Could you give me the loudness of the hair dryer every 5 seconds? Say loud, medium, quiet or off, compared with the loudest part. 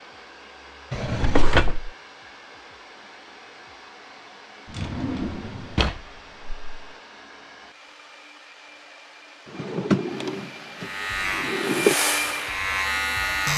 quiet, quiet, loud.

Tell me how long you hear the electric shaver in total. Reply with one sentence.
You can hear the electric shaver for 3 seconds altogether.